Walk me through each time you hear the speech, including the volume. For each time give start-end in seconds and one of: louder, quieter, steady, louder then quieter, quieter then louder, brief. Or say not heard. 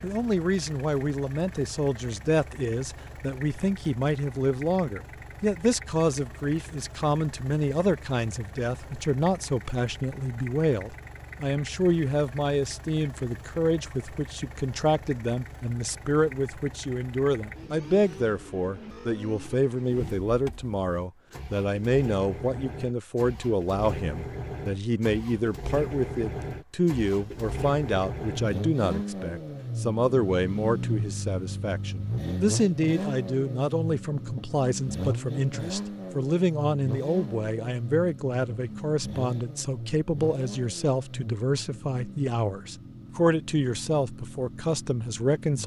0.0-45.6 steady.